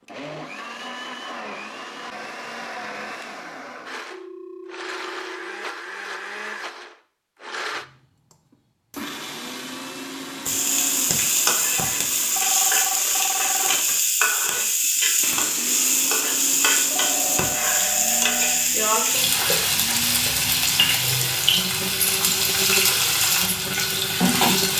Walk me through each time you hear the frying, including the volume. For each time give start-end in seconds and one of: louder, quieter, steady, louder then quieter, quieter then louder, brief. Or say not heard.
10.4-24.7 steady.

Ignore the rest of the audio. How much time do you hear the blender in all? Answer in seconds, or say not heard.
25 s.